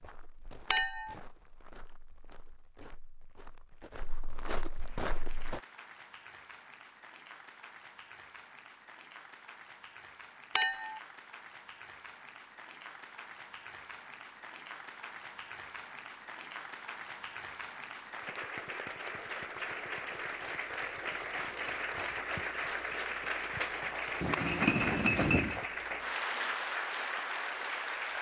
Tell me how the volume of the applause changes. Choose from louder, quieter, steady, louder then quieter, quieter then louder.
louder.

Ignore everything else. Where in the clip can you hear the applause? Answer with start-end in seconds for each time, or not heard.
4.7-28.1.